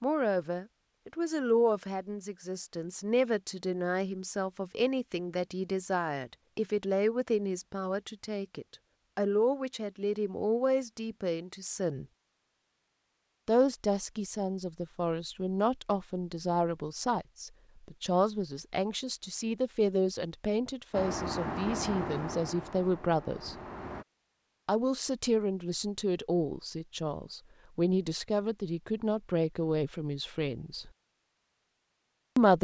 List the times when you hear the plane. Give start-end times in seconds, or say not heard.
20.9-24.1.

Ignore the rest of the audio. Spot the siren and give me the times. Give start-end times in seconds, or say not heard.
not heard.